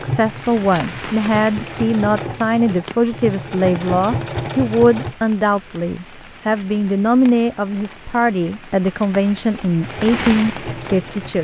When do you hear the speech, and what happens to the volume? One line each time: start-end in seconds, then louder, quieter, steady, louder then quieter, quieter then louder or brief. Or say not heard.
0.0-11.3 steady.